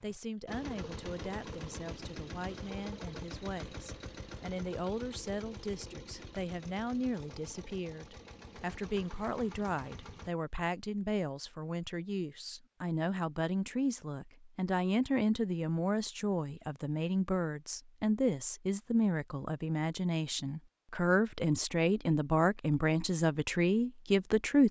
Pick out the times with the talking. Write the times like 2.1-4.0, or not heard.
0.0-24.6.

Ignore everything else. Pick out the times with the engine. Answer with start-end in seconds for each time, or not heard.
0.0-10.3.